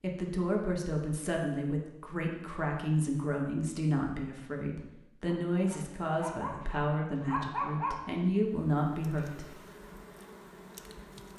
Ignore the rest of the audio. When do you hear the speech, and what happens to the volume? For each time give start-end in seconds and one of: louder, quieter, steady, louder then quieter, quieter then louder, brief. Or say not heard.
0.0-9.5 steady.